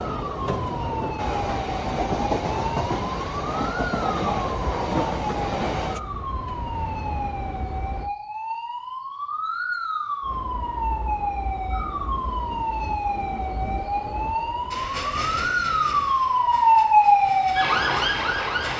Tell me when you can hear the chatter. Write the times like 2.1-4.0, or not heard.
not heard.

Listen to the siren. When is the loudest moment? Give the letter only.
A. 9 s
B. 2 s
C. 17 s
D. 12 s
C.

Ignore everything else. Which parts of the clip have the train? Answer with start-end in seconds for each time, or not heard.
0.0-8.1, 10.2-18.7.